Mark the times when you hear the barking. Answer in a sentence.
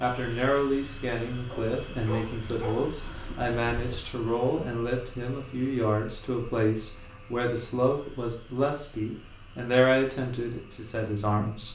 You can hear the barking from 1.4 to 4.0 s.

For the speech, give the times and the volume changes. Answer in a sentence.
The speech can be heard from 0.0 to 11.6 s, at a steady volume.